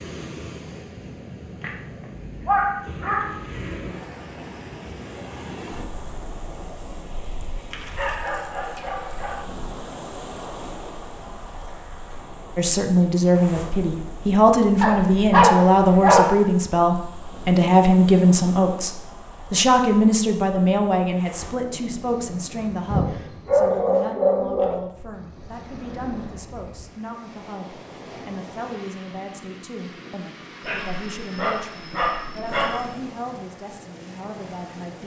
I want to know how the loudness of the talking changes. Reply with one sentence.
The loudness of the talking goes down.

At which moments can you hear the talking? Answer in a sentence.
You can hear the talking from 12.6 to 35.0 s.